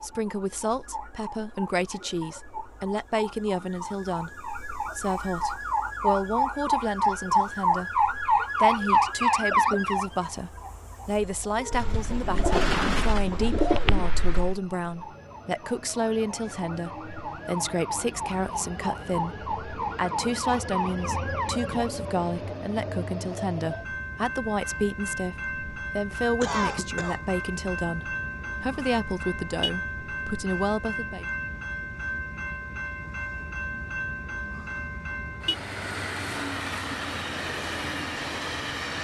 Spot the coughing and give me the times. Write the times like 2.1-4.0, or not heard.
26.4-27.4.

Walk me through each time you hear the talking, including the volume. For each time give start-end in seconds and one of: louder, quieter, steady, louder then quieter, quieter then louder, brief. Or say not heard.
0.0-31.2 steady.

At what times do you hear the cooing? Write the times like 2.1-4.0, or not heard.
11.7-14.6.